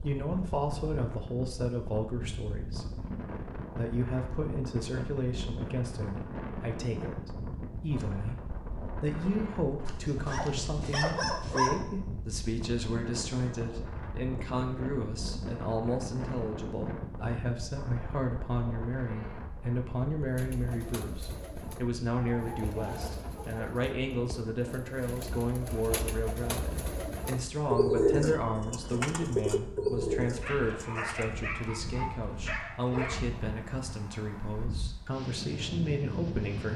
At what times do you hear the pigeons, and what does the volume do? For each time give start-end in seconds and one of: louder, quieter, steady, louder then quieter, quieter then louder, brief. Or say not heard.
20.3-31.4 louder.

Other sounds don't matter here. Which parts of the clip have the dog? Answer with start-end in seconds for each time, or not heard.
9.8-11.8, 30.4-33.2.